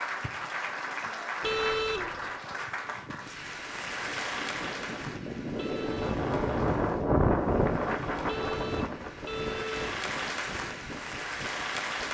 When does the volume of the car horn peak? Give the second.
2 s.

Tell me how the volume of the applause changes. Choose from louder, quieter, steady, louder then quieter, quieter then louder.
quieter then louder.